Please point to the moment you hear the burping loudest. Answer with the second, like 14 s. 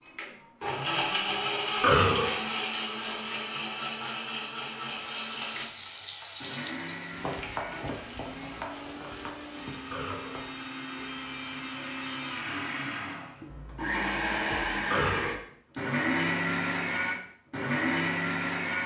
2 s.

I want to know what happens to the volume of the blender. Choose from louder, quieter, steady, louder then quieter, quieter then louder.
quieter then louder.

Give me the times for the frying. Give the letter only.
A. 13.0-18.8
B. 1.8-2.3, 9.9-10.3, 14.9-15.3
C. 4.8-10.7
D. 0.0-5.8
C.